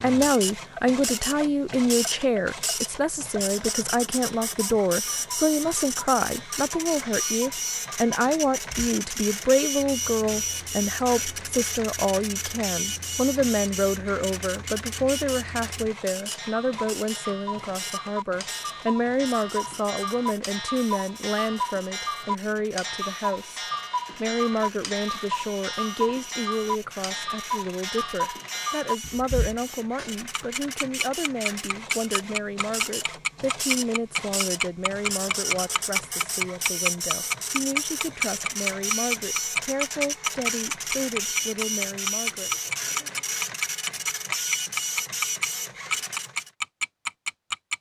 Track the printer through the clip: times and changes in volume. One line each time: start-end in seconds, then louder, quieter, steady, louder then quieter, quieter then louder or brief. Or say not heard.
0.0-46.5 quieter then louder.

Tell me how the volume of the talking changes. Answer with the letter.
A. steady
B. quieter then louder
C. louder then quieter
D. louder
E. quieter
E.